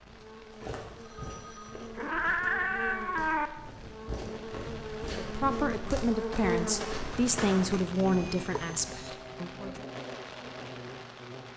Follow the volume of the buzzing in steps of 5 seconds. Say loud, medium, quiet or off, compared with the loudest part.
medium, loud, medium.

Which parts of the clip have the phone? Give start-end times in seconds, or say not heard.
0.6-1.9.